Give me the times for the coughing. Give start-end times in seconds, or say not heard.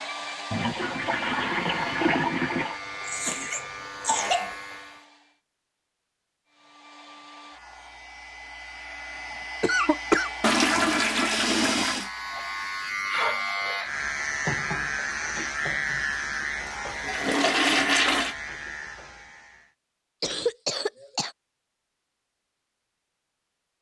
3.0-4.5, 9.6-10.3, 20.2-21.4.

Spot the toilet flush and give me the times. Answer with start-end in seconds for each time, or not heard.
0.5-2.8, 10.4-12.1, 16.6-18.4.